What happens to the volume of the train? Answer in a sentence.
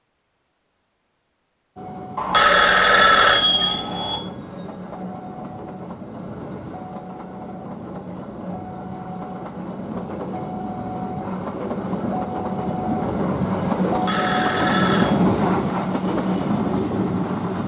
The loudness of the train goes up.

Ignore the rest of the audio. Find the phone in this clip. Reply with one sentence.
You can hear the phone from 2.1 to 4.2 s and from 13.9 to 15.2 s.